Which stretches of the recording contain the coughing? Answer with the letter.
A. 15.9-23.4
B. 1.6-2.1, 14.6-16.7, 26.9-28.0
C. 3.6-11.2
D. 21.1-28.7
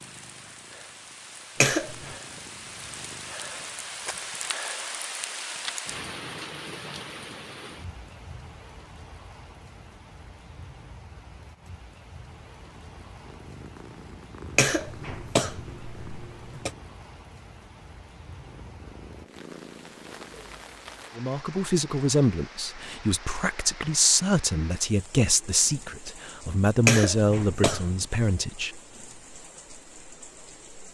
B.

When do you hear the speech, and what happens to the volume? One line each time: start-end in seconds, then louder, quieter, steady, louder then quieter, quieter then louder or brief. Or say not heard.
21.1-28.7 steady.